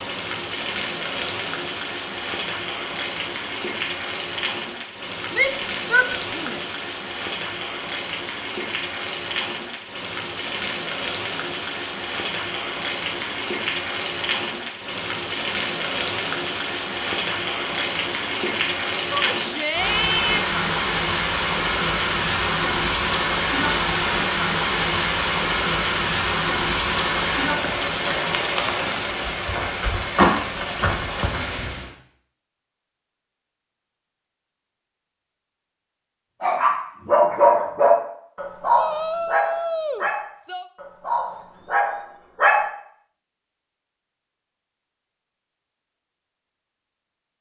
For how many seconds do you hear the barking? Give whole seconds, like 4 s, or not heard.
6 s.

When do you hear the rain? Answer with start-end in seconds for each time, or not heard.
0.0-31.9.